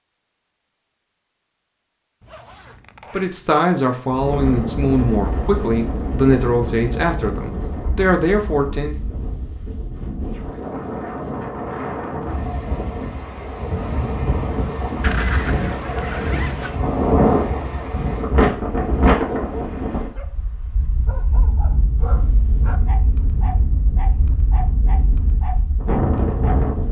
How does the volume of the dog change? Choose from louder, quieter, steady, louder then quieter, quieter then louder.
louder.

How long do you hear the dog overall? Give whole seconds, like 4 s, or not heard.
7 s.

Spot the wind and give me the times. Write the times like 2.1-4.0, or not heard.
4.1-26.8.